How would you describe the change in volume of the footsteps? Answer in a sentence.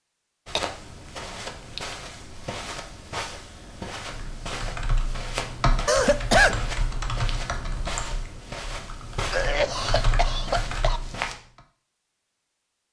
The loudness of the footsteps stays about the same.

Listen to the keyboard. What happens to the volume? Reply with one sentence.
The volume of the keyboard goes down, then up.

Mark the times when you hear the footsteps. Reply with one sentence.
You can hear the footsteps from 0.5 to 11.3 s.